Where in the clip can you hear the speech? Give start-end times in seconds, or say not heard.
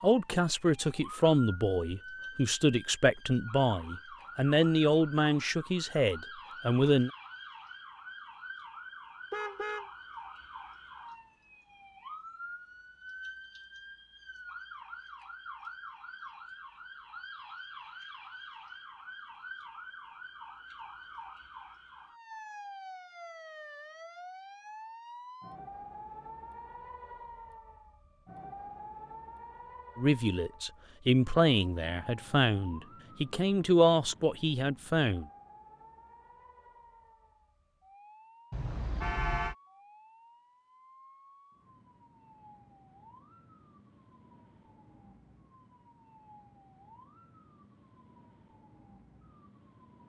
0.0-7.1, 29.9-35.2.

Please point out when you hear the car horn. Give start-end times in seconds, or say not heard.
9.3-9.9, 38.5-39.5.